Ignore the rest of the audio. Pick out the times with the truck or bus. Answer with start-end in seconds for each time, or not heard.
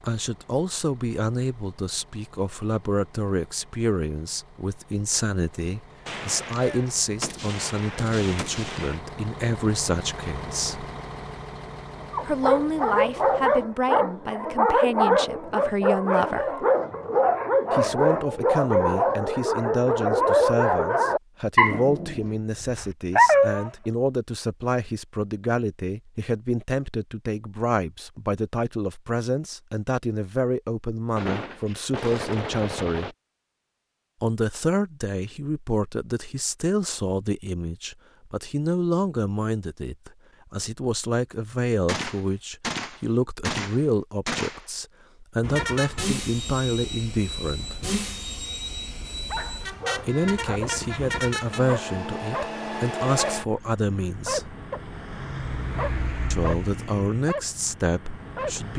0.0-13.7, 45.4-58.7.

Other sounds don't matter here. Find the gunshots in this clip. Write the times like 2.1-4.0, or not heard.
6.0-9.0, 31.1-33.1, 41.9-44.7.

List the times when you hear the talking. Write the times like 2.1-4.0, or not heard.
0.0-10.8, 12.2-16.6, 17.7-33.1, 34.2-47.9, 50.0-54.5, 56.3-58.7.